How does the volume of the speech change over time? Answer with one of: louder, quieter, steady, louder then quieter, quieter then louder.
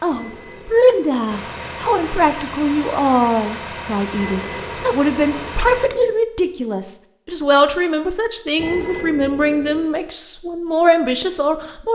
steady.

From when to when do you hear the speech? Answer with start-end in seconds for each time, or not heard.
0.0-11.9.